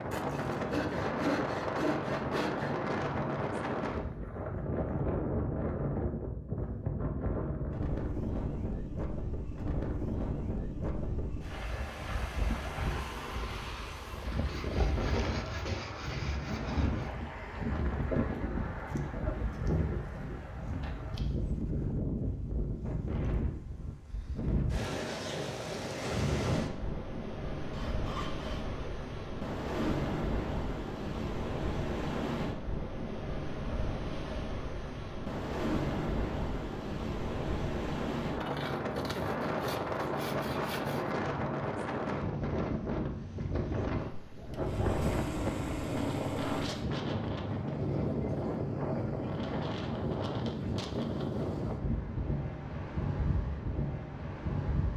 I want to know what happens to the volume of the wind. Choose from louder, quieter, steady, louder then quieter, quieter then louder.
steady.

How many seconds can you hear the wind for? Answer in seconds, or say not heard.
55 s.